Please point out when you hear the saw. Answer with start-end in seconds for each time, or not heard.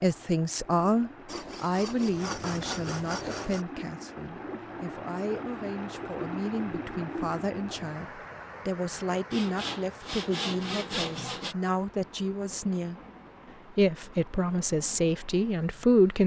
1.2-3.6, 9.3-11.6.